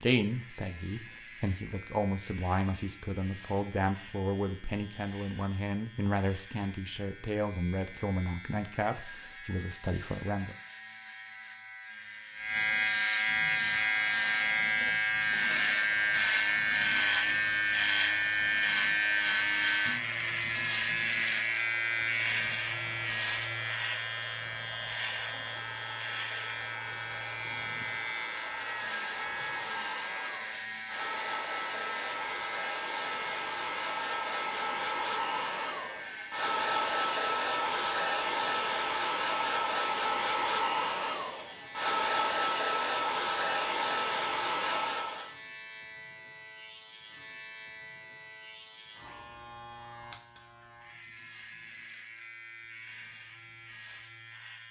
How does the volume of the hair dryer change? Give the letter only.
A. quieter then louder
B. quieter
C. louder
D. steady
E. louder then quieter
C.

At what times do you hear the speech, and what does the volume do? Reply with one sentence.
The speech can be heard from 0.0 to 10.6 s, at a steady volume.